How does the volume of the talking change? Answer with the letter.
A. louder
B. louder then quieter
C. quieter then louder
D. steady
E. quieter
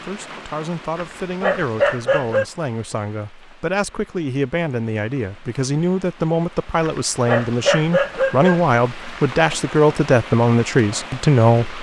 A.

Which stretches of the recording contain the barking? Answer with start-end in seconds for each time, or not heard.
0.9-2.5, 6.8-9.3.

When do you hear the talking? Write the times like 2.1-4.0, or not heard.
0.0-11.7.